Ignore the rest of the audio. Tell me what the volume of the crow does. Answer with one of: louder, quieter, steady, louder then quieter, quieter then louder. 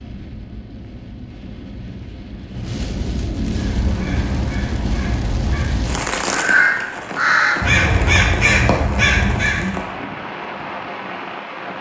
louder.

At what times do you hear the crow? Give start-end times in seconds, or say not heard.
3.5-9.8.